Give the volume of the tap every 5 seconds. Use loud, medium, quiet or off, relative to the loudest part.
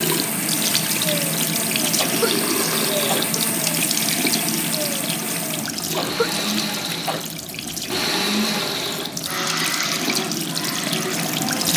loud, medium, loud.